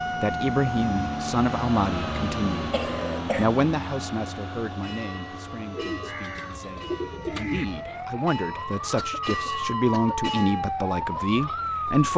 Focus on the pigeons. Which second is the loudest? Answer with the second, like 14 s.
7 s.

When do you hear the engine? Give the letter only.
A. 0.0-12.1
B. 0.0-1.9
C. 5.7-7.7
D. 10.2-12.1
A.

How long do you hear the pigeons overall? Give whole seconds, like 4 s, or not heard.
2 s.